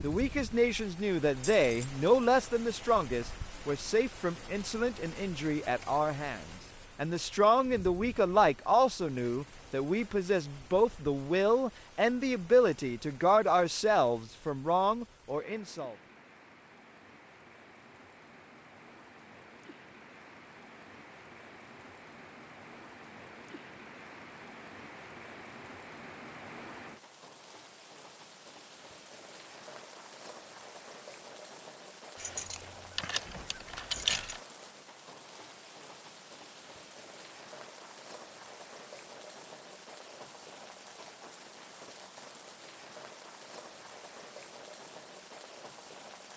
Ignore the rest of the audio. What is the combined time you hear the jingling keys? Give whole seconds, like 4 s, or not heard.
3 s.